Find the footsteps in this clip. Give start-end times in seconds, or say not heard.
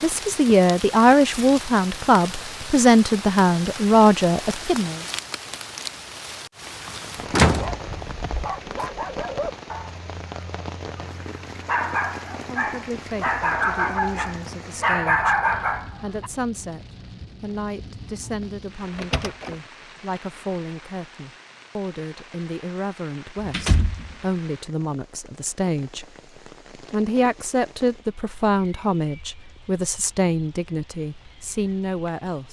not heard.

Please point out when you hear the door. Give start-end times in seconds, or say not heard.
7.0-8.8, 17.8-19.6, 23.4-24.1.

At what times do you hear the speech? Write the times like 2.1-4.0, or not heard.
0.0-5.0, 12.4-26.1, 26.9-32.4.